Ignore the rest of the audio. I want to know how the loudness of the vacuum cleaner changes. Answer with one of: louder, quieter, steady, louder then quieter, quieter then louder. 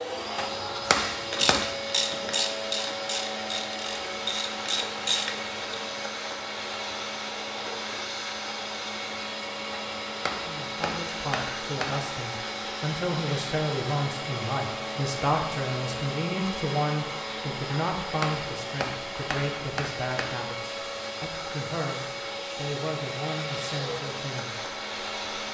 steady.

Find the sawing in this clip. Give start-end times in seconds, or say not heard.
not heard.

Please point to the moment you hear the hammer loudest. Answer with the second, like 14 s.
1 s.